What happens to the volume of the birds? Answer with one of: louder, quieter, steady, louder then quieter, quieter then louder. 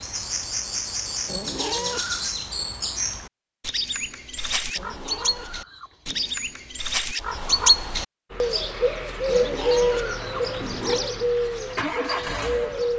louder then quieter.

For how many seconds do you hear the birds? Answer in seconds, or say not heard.
13 s.